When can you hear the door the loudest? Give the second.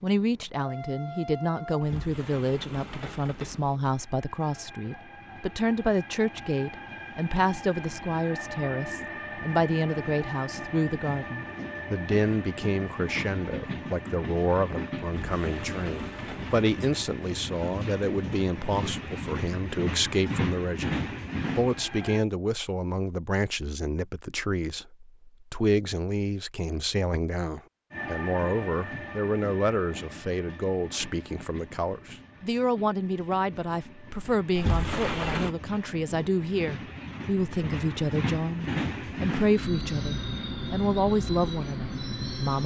35 s.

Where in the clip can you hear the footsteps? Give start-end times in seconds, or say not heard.
not heard.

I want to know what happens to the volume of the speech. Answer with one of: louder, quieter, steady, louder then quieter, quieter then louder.
steady.